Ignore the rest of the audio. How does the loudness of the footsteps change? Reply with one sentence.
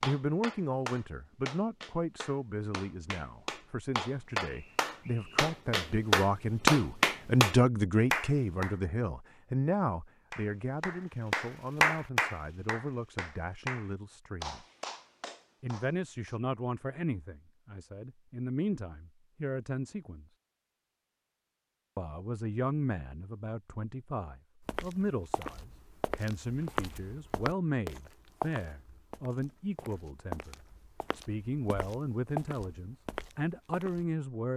The volume of the footsteps goes down, then up.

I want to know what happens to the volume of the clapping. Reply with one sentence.
The volume of the clapping goes up, then down.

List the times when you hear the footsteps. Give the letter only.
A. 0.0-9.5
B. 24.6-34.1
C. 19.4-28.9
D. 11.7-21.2
B.